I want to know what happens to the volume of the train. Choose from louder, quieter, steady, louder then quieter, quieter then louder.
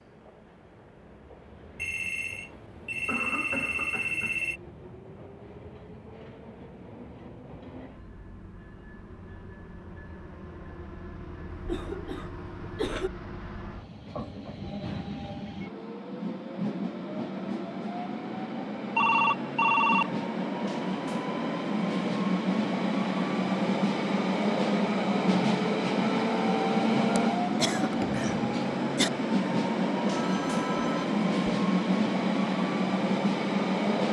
louder.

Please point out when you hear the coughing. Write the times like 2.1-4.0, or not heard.
3.0-4.4, 11.5-13.1, 27.1-29.1.